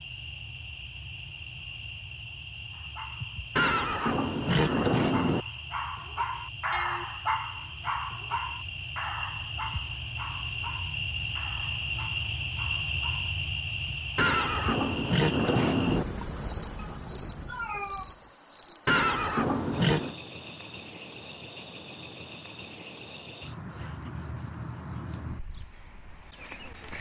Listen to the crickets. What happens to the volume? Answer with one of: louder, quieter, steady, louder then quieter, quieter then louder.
louder then quieter.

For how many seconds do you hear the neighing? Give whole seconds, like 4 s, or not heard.
5 s.